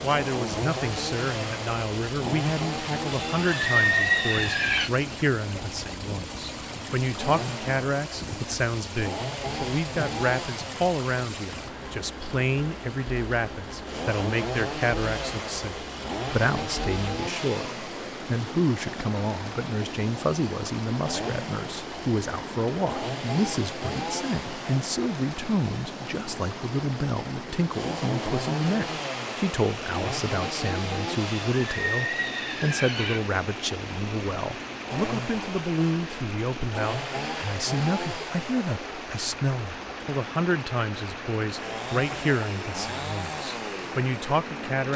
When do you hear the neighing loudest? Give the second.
4 s.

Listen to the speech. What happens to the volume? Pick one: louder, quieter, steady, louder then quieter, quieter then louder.
steady.